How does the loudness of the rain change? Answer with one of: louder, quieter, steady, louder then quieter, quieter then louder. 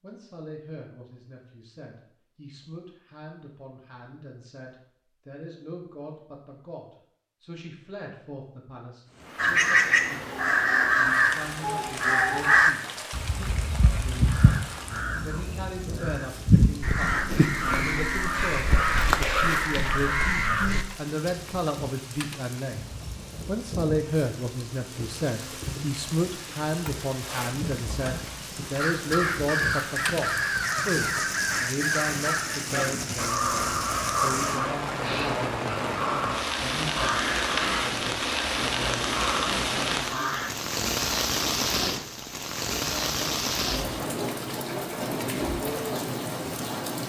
louder.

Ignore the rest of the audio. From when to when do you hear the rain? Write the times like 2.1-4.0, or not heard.
9.1-47.0.